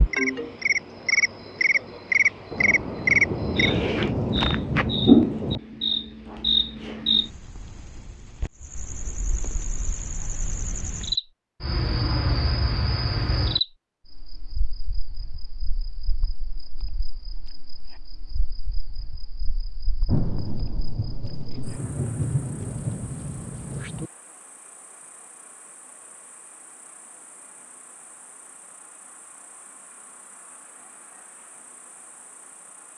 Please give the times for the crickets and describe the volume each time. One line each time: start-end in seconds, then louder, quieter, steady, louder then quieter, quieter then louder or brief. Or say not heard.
0.0-32.9 quieter.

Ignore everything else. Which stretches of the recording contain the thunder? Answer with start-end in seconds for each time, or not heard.
2.5-5.6, 20.1-24.1.